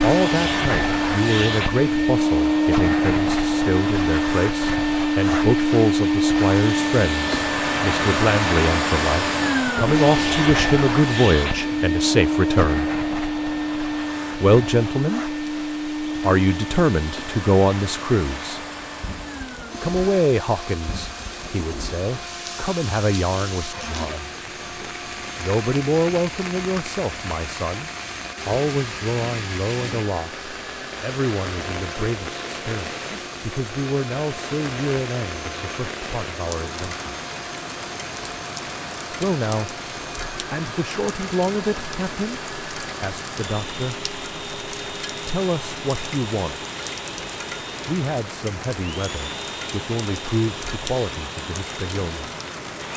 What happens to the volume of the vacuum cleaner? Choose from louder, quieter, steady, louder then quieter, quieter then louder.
quieter.